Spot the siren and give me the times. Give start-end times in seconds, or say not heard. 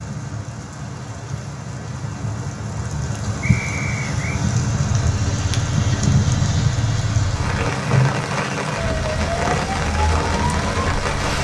8.8-11.4.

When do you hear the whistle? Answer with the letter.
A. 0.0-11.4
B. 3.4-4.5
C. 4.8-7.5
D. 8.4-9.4
B.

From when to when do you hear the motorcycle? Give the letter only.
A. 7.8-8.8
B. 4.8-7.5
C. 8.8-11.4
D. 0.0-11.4
B.